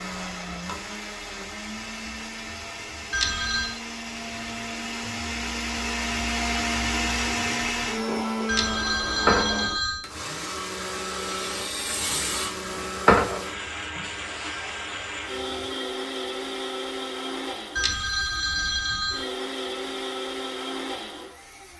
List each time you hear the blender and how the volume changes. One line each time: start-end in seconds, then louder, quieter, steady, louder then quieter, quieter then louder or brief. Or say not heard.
0.0-21.7 louder then quieter.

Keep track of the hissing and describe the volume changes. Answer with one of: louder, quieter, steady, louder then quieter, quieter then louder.
louder then quieter.